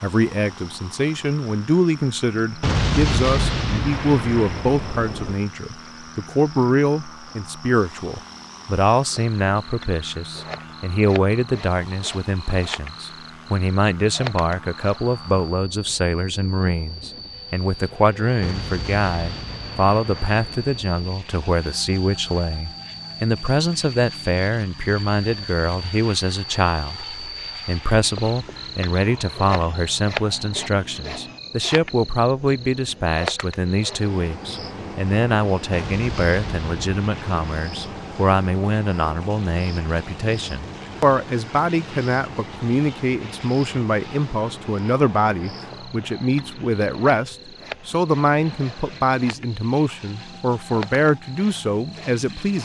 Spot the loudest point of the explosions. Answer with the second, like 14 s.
3 s.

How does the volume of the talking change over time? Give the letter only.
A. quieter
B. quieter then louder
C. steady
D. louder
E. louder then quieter
C.